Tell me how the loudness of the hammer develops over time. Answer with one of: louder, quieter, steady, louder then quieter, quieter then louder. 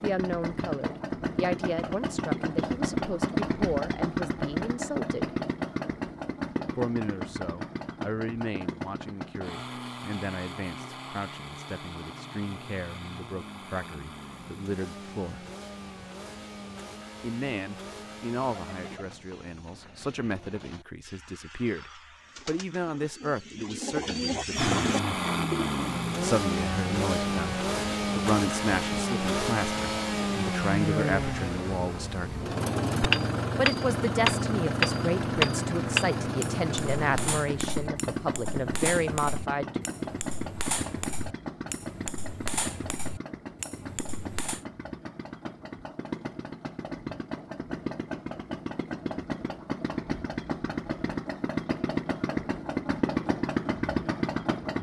quieter.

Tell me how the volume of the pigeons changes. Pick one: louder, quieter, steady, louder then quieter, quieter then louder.
louder.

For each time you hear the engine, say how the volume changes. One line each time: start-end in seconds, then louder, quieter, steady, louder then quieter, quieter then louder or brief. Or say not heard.
0.0-19.0 quieter
24.6-54.7 quieter then louder.